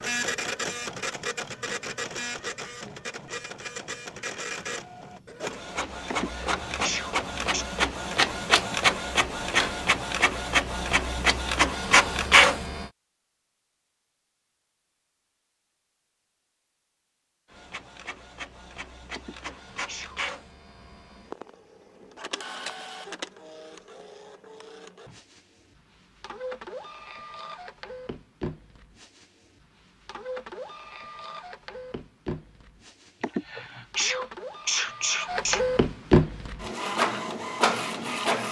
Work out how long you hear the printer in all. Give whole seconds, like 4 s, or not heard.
34 s.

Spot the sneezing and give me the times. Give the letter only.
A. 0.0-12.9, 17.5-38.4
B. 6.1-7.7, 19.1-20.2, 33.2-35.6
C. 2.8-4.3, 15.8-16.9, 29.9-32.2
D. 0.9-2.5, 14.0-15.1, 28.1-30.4
B.